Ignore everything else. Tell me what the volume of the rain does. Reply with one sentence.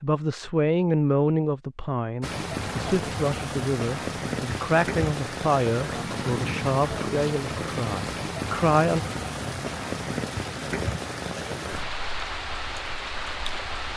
The volume of the rain stays about the same.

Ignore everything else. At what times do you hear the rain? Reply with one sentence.
The rain can be heard from 2.2 to 13.9 s.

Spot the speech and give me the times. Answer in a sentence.
The speech can be heard from 0.0 to 9.0 s.